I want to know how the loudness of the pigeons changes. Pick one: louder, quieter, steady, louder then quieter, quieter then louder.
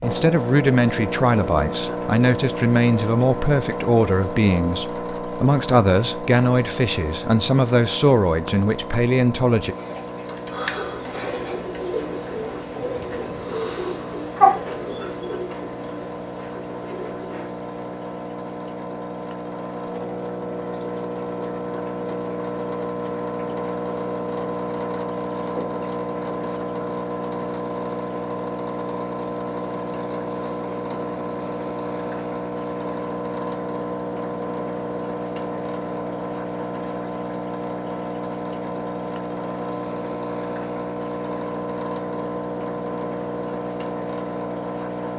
louder then quieter.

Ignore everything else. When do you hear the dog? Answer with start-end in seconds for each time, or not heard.
not heard.